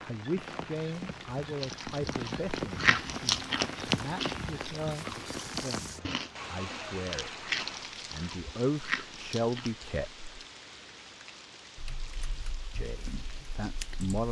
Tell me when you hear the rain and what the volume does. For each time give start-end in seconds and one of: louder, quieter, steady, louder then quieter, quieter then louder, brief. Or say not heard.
0.0-14.2 quieter.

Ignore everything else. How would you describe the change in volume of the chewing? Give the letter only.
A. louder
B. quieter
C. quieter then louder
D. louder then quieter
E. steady
B.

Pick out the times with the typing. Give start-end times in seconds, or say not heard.
11.8-14.2.